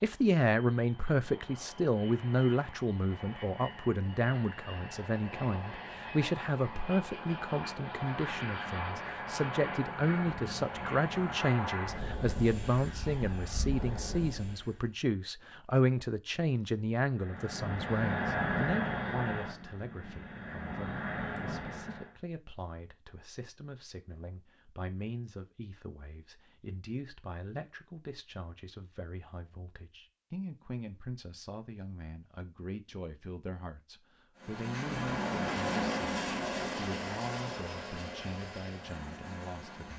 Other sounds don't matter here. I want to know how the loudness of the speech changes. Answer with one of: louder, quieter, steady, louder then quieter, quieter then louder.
quieter.